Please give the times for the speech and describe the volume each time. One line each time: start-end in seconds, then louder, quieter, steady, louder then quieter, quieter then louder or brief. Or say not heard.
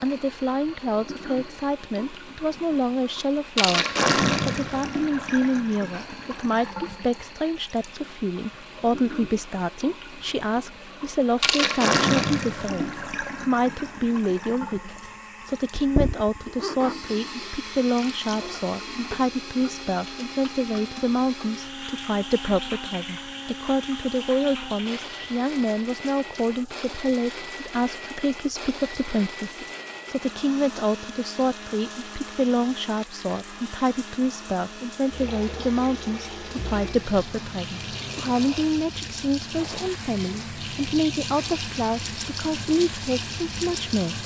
0.0-44.2 steady.